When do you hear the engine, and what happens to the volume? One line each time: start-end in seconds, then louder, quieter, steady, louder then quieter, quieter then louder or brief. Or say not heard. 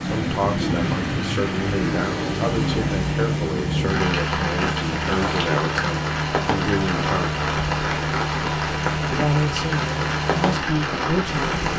0.0-11.7 steady.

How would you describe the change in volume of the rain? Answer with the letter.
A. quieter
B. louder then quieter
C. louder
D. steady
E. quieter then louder
D.